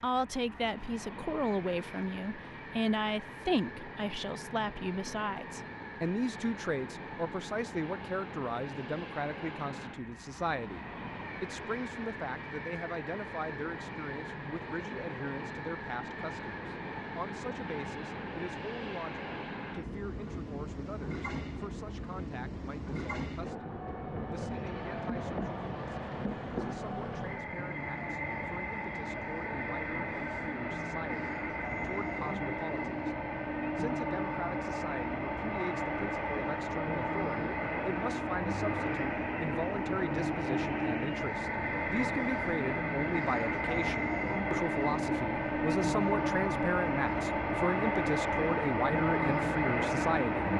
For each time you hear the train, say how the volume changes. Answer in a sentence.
You can hear the train from 0.0 to 50.5 s, getting louder.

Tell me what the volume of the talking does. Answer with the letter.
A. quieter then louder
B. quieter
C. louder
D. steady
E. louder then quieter
A.